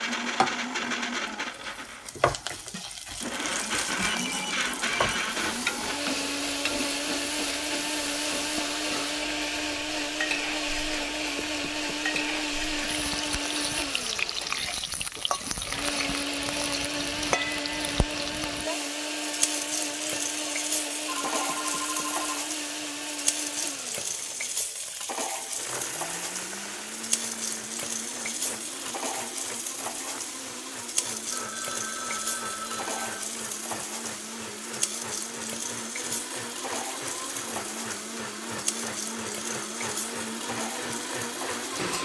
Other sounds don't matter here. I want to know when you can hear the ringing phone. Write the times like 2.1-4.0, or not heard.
3.9-5.3, 21.1-23.0, 31.3-33.2.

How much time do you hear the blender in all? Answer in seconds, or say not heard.
42 s.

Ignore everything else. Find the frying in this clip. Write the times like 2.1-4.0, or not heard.
0.3-42.0.